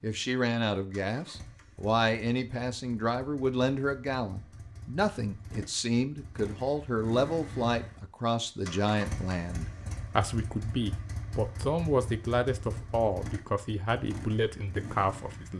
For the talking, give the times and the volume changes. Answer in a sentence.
The talking can be heard from 0.0 to 15.5 s, at a steady volume.